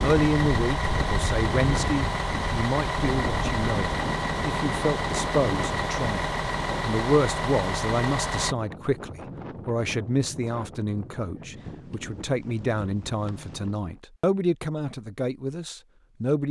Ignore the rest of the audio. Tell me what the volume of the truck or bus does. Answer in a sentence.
The volume of the truck or bus stays about the same.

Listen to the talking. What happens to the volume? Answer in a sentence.
The loudness of the talking stays about the same.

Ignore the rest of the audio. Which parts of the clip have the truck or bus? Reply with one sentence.
You can hear the truck or bus from 0.0 to 8.6 s.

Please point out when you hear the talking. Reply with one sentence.
The talking can be heard from 0.0 to 16.4 s.